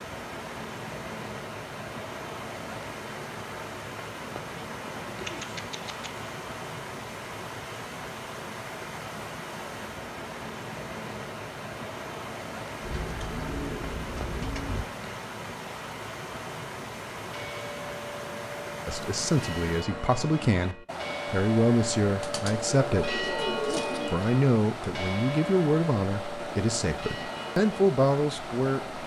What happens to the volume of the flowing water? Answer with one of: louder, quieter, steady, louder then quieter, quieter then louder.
steady.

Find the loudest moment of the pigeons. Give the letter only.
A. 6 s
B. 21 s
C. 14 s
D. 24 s
D.